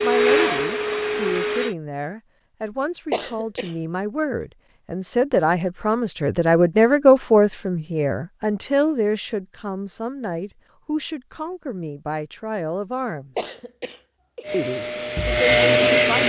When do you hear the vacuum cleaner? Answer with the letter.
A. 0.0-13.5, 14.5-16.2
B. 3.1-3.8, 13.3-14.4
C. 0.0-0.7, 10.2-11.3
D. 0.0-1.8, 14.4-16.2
D.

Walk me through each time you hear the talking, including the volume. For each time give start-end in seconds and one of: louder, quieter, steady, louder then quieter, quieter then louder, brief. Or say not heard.
0.0-13.5 louder then quieter
14.5-16.2 brief.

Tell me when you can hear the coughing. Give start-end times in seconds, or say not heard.
3.1-3.8, 13.3-14.4.